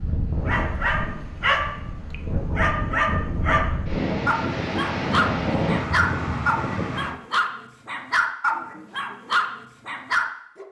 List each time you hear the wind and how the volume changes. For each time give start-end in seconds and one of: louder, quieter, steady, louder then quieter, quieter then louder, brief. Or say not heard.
0.0-7.2 louder.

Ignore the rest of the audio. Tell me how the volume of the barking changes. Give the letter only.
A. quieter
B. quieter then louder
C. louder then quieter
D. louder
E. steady
E.